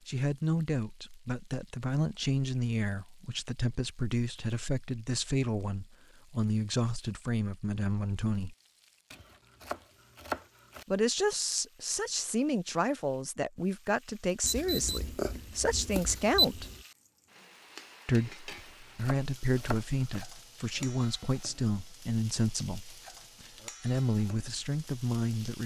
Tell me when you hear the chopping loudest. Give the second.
10 s.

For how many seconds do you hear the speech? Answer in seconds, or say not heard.
22 s.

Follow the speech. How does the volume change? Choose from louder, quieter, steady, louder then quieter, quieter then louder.
steady.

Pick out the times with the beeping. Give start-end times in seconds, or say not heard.
14.4-16.8.